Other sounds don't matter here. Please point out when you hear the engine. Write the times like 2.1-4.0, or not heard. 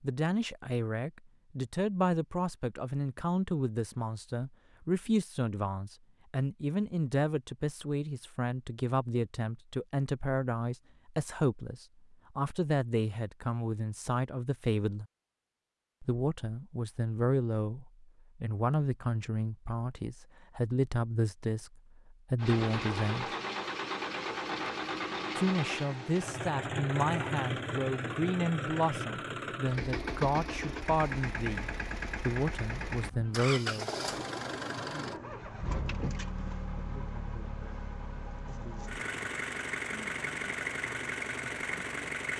22.4-42.3.